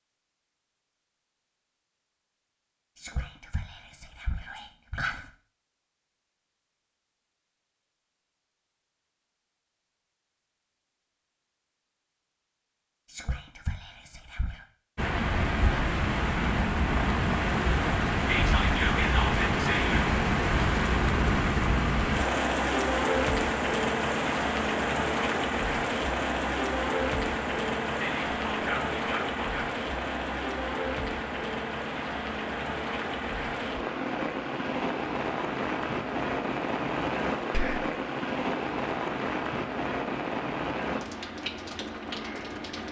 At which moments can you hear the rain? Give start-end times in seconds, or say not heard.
14.9-42.8.